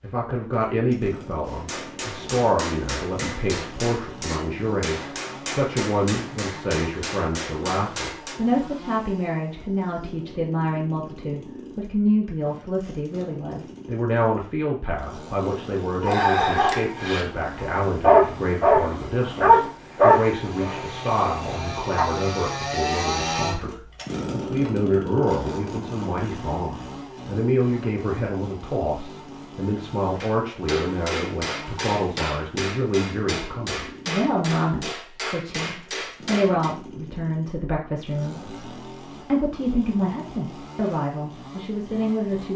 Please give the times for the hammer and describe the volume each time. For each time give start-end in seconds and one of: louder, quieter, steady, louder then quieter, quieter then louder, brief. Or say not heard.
1.4-8.4 steady
30.2-36.8 steady.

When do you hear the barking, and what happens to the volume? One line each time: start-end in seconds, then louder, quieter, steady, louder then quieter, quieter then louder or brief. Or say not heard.
16.0-22.1 louder then quieter.